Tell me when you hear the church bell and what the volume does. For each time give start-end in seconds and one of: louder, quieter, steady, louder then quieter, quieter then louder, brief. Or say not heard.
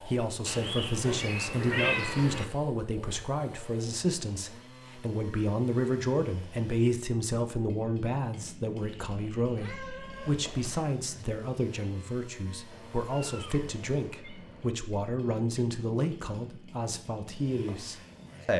not heard.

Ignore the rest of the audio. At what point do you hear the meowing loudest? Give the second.
2 s.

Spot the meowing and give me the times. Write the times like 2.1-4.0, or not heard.
0.5-2.5, 8.8-10.8, 12.7-14.7.